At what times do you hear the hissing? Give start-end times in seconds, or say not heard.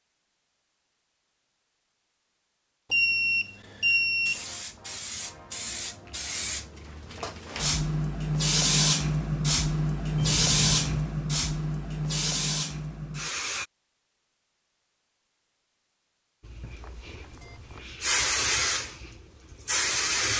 4.2-13.7, 16.4-20.3.